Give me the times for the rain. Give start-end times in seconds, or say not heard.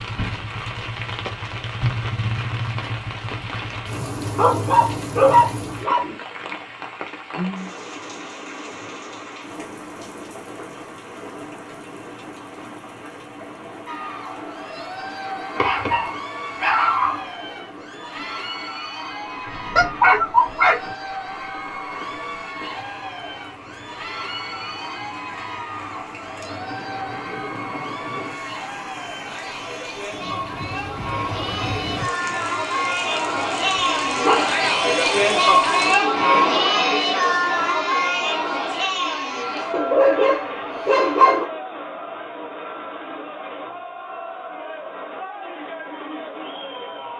0.0-36.0.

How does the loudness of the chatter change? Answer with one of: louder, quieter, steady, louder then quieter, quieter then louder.
louder then quieter.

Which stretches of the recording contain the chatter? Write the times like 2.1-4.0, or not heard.
13.8-47.1.